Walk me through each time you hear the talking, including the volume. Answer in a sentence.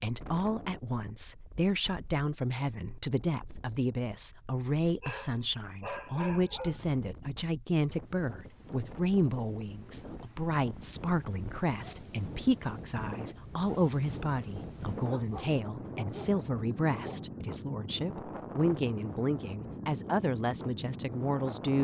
You can hear the talking from 0.0 to 21.7 s, at a steady volume.